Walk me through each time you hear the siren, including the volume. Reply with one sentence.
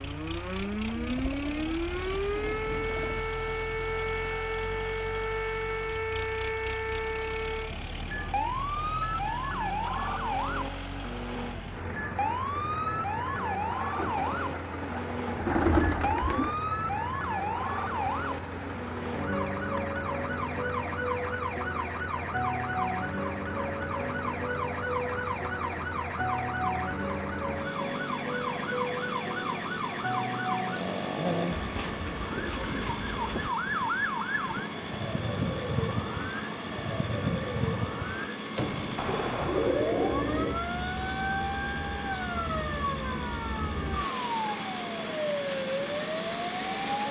You can hear the siren from 0.0 to 47.0 s, at a steady volume.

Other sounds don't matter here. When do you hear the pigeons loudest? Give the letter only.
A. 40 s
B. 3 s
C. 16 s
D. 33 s
C.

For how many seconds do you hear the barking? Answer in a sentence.
You can't hear the barking here.